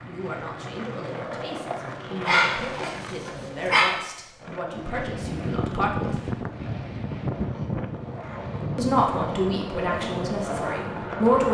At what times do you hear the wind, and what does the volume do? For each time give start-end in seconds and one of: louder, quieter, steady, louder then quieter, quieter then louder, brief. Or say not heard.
4.7-11.4 quieter.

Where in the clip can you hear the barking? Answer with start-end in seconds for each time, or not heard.
2.2-3.9.